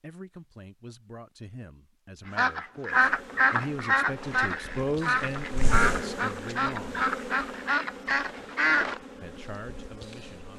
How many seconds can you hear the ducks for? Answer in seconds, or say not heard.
7 s.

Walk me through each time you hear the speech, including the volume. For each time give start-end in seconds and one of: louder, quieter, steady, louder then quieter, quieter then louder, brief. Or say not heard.
0.0-7.0 louder then quieter
9.2-10.5 brief.